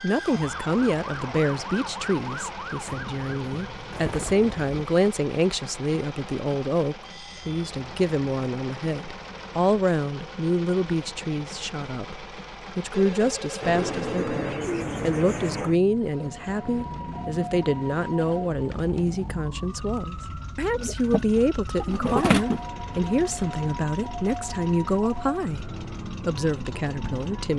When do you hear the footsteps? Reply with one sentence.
The footsteps can't be heard in this clip.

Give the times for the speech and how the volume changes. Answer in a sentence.
The speech can be heard from 0.0 to 27.5 s, at a steady volume.